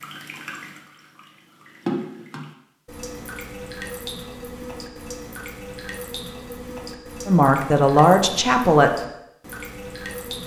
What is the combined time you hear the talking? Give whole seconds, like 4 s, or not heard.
2 s.